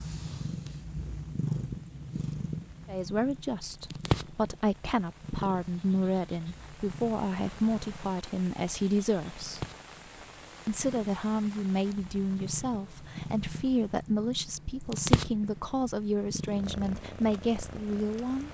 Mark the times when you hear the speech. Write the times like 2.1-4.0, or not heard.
2.9-9.7, 10.7-18.4.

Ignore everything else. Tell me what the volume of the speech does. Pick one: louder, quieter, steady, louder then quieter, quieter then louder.
steady.